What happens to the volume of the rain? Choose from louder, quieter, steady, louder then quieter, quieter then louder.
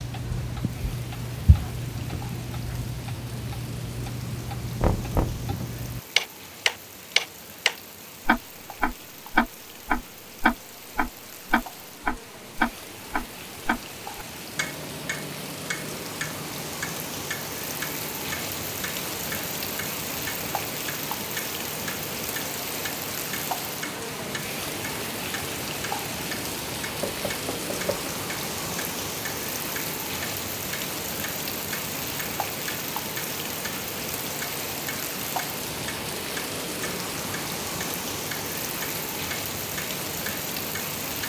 louder.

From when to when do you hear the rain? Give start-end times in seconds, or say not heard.
0.0-41.2.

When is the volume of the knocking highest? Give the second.
5 s.